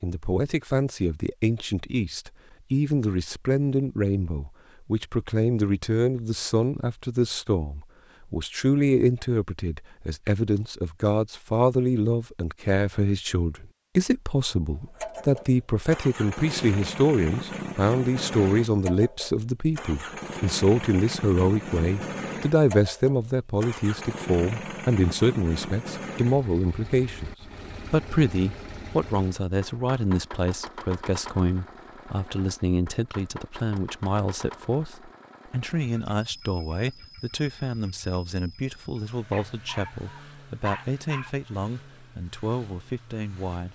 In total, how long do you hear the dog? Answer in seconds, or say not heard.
2 s.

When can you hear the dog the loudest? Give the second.
41 s.